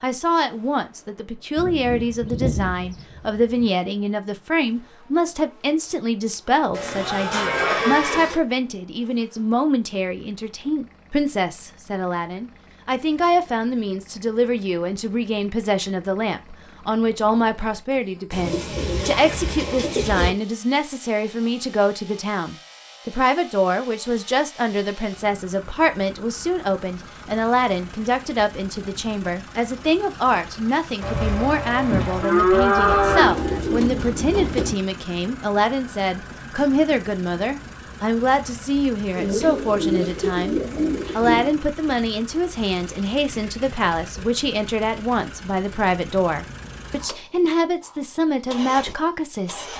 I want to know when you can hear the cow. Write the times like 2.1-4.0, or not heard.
6.7-8.3, 31.0-33.6.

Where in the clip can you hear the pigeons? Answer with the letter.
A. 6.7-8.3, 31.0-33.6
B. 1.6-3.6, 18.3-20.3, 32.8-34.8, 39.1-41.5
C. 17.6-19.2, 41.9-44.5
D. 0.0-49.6
B.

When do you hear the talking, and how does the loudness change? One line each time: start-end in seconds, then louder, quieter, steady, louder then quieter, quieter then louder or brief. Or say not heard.
0.0-49.6 steady.